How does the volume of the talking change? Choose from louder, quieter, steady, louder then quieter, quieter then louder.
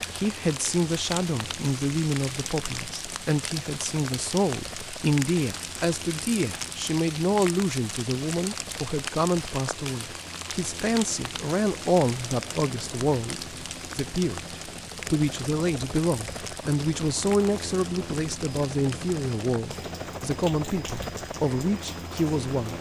steady.